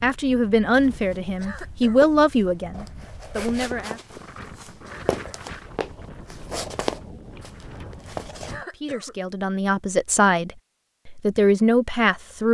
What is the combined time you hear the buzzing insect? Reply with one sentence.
The buzzing insect can't be heard in this clip.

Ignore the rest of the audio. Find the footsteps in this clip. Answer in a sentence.
The footsteps can be heard from 0.8 to 8.7 s.